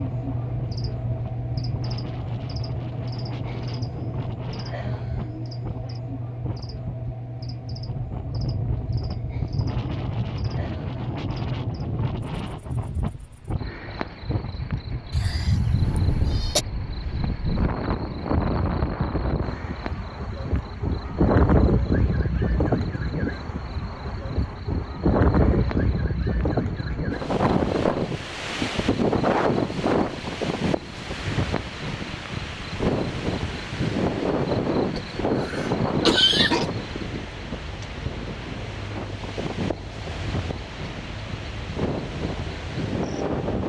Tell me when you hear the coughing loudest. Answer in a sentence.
The volume of the coughing peaks at 36 seconds.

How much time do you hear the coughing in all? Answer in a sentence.
You can hear the coughing for 3 seconds altogether.